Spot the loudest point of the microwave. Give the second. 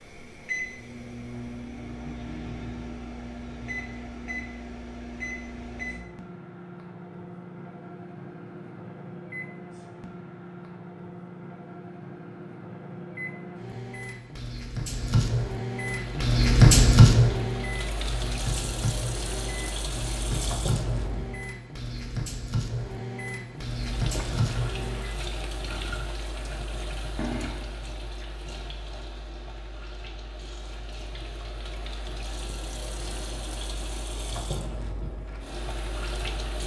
17 s.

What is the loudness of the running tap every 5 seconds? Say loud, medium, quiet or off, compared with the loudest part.
off, off, off, loud, loud, loud, loud, loud.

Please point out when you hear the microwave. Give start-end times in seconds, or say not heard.
0.0-25.1.